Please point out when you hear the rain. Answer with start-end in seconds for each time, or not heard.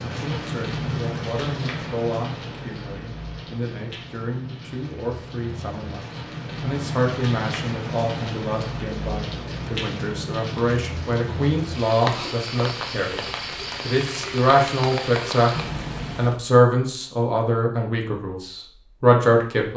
0.0-16.4.